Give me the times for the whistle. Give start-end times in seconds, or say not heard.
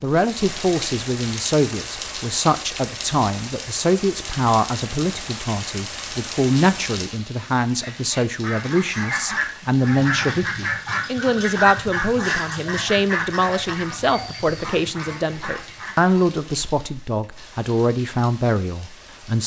not heard.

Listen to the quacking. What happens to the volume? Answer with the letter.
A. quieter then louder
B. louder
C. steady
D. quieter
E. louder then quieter
D.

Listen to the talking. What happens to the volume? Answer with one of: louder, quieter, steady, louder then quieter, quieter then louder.
steady.